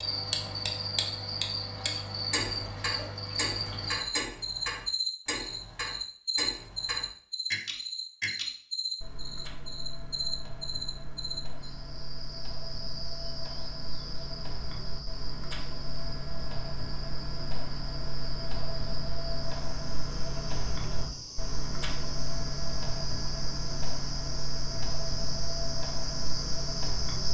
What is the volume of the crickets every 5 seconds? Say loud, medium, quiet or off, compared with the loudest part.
loud, loud, medium, medium, medium, loud.